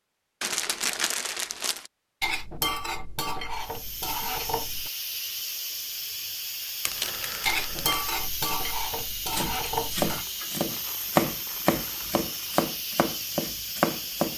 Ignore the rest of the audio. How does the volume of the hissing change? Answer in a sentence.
The loudness of the hissing stays about the same.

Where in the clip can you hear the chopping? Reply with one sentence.
The chopping can be heard from 9.3 to 14.3 s.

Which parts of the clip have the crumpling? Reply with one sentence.
The crumpling can be heard from 0.4 to 1.9 s, from 6.8 to 8.0 s and from 10.1 to 12.7 s.